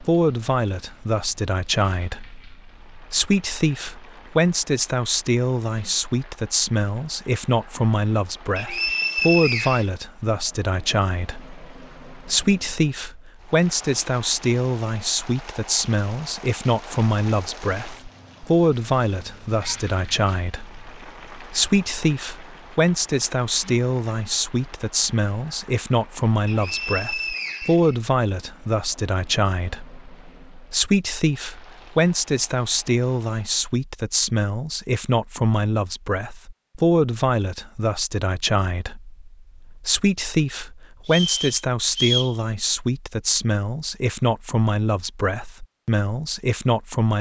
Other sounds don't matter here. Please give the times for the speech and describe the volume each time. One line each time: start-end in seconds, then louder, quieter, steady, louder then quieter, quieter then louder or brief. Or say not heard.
0.0-47.1 steady.